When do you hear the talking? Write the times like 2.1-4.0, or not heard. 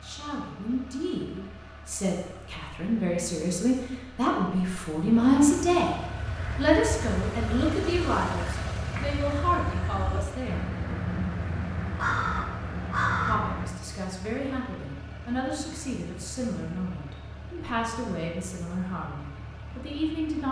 0.0-6.0, 6.5-10.7, 13.2-20.4.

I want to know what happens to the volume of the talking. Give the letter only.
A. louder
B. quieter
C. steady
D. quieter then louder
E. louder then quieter
E.